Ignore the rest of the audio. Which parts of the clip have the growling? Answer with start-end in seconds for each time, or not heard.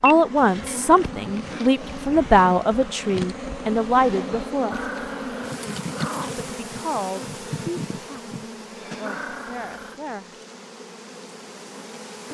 0.7-2.2, 4.7-6.5, 9.1-10.1.